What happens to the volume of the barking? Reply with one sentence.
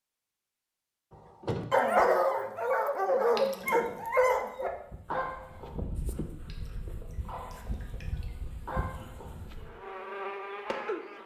The loudness of the barking goes down, then up.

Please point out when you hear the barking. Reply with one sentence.
You can hear the barking from 1.1 to 9.7 s.